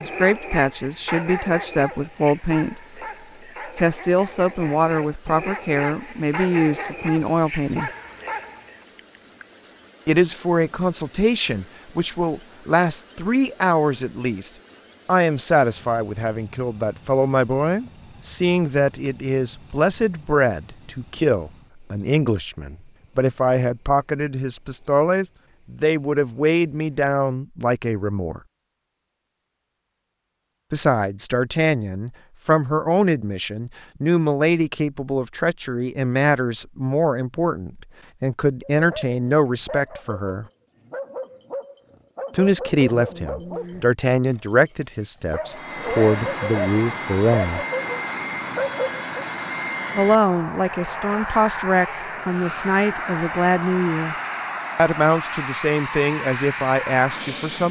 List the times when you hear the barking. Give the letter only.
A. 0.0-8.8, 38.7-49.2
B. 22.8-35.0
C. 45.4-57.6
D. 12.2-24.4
A.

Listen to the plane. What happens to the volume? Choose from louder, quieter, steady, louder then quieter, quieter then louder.
steady.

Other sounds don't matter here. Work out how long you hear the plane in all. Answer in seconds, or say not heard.
12 s.